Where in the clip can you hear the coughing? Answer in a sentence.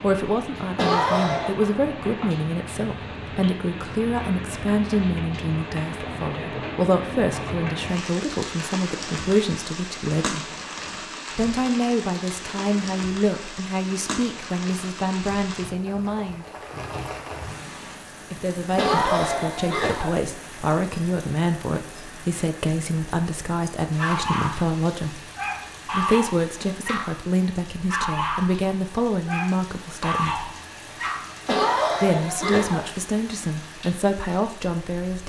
The coughing can be heard from 0.8 to 1.6 s, from 18.8 to 20.2 s and from 31.4 to 32.9 s.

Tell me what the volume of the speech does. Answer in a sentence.
The volume of the speech stays about the same.